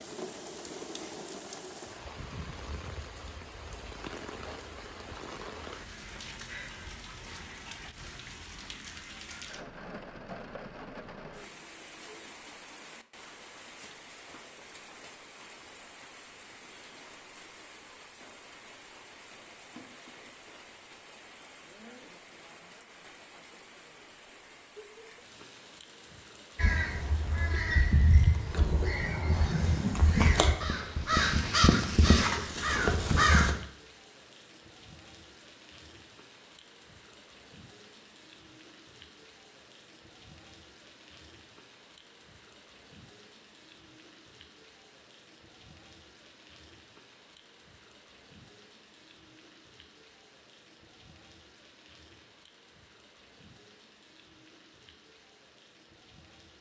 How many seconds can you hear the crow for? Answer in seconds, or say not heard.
7 s.